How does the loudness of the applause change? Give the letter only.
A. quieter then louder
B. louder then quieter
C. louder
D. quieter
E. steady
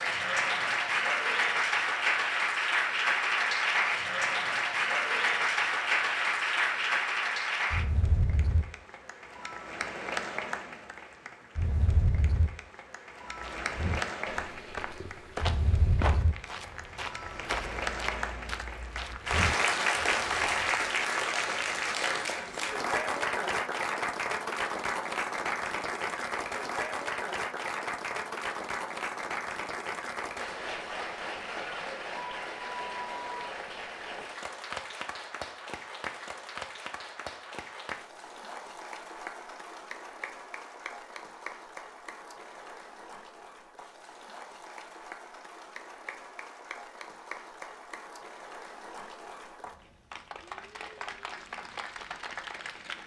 D.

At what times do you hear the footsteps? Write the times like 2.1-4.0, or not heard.
13.2-20.9.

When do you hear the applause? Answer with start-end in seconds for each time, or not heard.
0.0-53.0.